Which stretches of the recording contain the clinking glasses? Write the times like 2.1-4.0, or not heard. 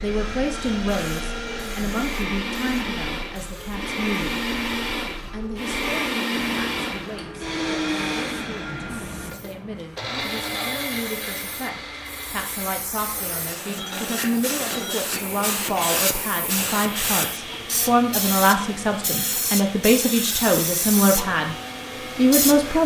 13.8-16.0.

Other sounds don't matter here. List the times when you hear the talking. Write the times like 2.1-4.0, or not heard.
0.0-4.5, 5.3-21.6, 22.1-22.8.